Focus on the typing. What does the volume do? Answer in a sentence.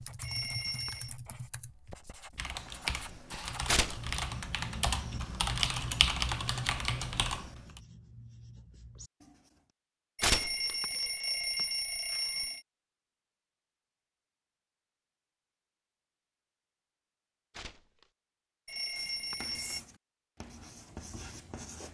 The volume of the typing goes up.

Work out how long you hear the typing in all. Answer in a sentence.
You can hear the typing for 8 seconds altogether.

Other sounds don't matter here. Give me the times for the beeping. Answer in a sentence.
The beeping can be heard from 0.2 to 1.1 s, from 10.2 to 12.7 s and from 18.6 to 19.8 s.